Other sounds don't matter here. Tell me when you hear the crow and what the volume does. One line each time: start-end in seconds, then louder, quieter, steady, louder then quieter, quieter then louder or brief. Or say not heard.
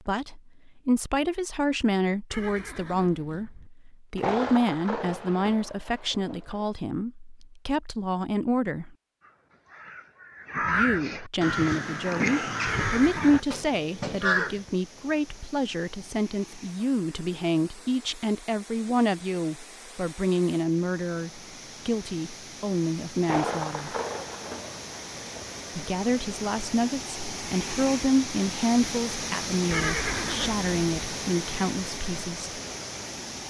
9.2-14.6 louder then quieter.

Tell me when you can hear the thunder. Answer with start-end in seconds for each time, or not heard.
4.2-6.7, 23.2-25.6.